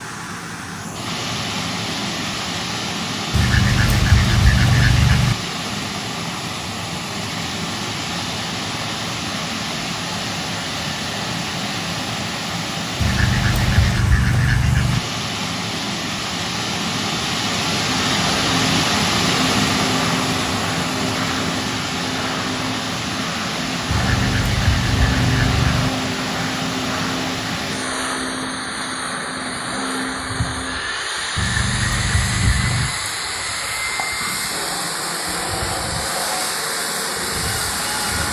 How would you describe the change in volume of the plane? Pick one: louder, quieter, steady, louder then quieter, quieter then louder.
steady.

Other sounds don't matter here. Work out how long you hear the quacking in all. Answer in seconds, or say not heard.
8 s.